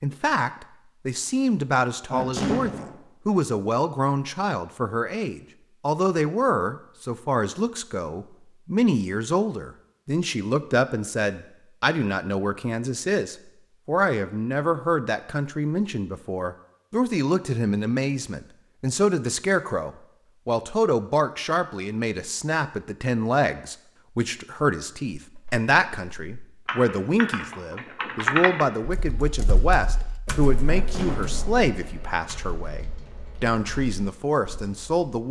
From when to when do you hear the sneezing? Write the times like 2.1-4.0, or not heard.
2.0-3.0, 30.6-31.6.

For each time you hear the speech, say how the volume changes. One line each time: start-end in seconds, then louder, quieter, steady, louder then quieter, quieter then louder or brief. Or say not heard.
0.0-35.2 steady.